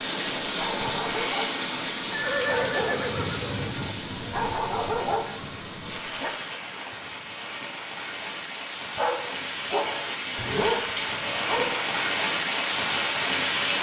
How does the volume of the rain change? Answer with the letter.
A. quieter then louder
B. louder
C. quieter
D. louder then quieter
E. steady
A.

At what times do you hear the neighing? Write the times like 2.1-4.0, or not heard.
2.1-3.9.